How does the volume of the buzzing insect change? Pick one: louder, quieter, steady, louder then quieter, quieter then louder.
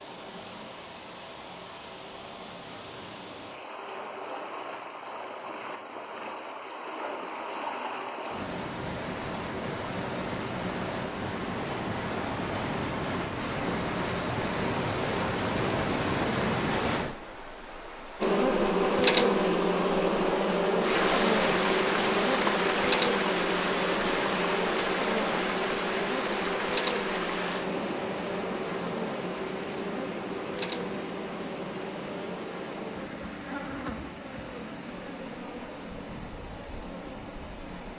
quieter.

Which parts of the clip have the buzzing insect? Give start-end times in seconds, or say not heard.
18.2-37.9.